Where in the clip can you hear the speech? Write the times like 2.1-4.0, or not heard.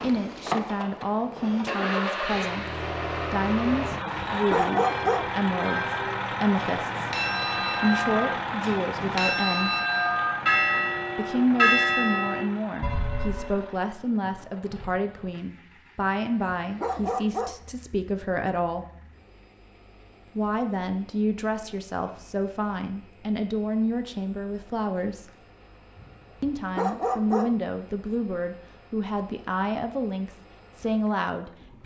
0.0-9.8, 11.2-18.9, 20.4-25.4, 26.4-31.8.